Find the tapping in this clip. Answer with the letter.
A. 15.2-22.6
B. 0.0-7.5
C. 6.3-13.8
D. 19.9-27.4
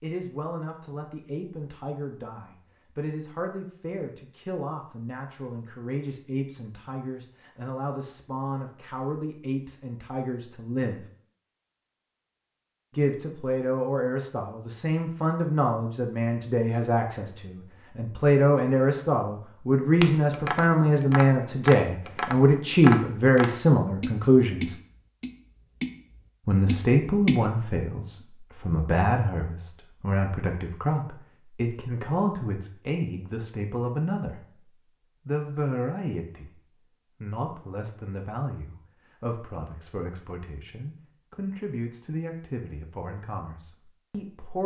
D.